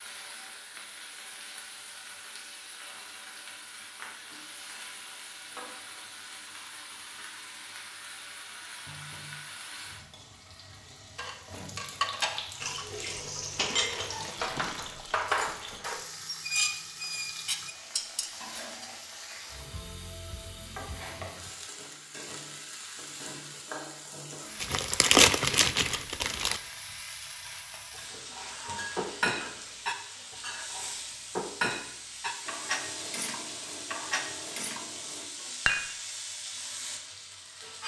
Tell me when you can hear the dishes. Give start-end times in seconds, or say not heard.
11.2-18.9, 27.9-36.0.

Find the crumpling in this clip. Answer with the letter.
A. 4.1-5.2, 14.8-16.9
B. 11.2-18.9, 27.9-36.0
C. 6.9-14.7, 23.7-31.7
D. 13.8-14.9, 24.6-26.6
D.